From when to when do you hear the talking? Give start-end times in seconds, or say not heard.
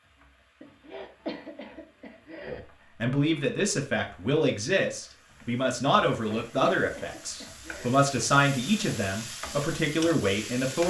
2.5-10.8.